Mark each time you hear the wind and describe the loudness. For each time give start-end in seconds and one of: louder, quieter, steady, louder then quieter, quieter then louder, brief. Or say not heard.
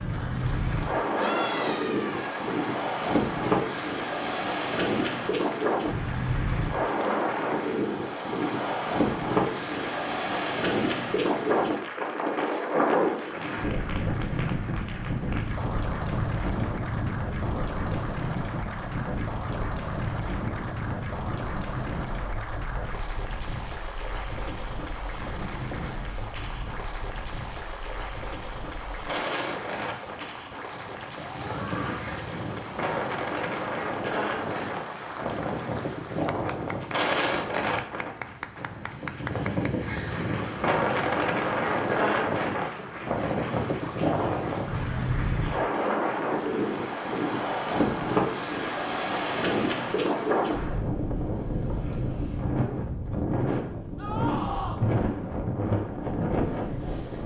0.0-57.2 quieter then louder.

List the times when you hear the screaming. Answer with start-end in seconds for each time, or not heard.
1.1-2.3, 31.4-32.2, 54.0-54.8.